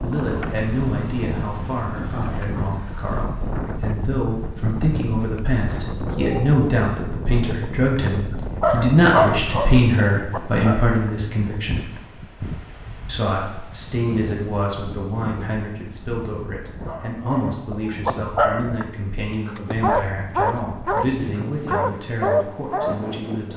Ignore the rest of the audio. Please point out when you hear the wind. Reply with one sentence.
You can hear the wind from 0.0 to 23.5 s.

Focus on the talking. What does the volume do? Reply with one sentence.
The volume of the talking goes up, then down.